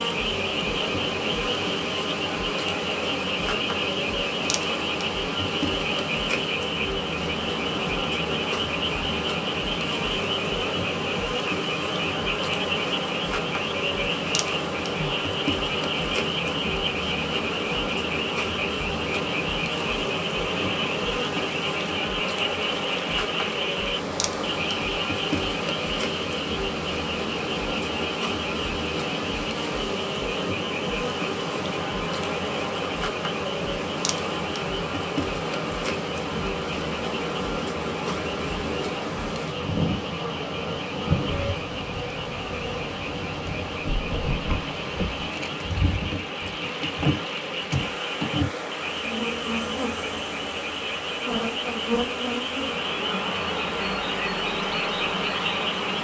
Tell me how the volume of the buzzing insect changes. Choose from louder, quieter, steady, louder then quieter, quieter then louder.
steady.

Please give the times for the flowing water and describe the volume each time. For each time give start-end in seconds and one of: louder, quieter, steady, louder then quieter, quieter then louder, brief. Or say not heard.
0.0-55.9 steady.